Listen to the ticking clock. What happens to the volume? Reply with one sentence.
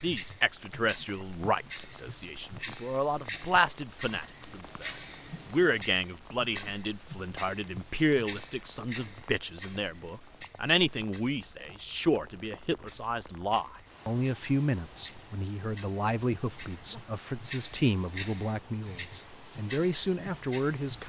The loudness of the ticking clock goes down, then up.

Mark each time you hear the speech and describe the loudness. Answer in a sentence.
The speech can be heard from 0.0 to 21.0 s, at a steady volume.